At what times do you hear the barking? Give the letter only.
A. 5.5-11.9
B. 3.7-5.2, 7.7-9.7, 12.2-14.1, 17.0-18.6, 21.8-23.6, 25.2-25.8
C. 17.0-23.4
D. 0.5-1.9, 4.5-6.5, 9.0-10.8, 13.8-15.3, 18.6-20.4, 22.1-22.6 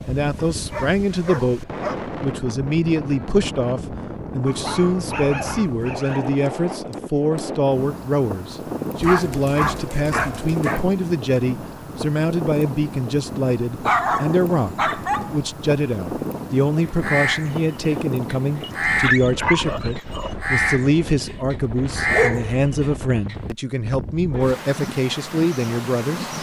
D.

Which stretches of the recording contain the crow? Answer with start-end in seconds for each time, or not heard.
17.0-23.4.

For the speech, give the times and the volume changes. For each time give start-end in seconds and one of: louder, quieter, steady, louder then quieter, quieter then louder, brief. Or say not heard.
0.1-26.3 steady.